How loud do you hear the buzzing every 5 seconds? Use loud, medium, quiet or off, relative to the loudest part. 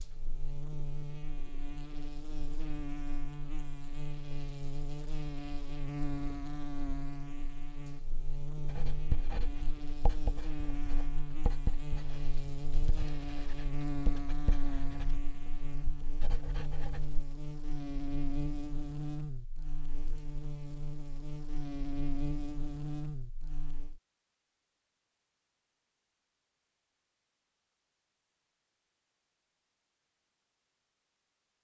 loud, loud, loud, loud, loud, off, off.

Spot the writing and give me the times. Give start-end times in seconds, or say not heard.
8.7-17.2.